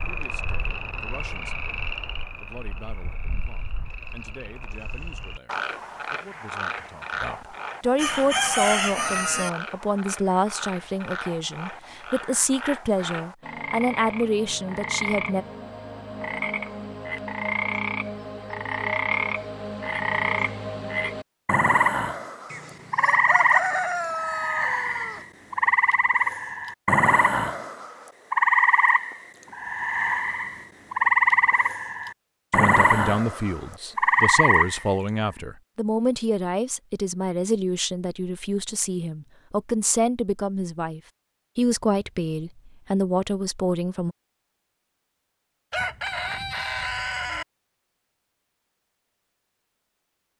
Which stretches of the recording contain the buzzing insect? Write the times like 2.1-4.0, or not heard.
not heard.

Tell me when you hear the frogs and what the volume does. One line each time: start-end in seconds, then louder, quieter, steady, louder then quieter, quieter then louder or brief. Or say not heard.
0.0-34.9 louder.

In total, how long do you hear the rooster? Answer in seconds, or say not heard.
6 s.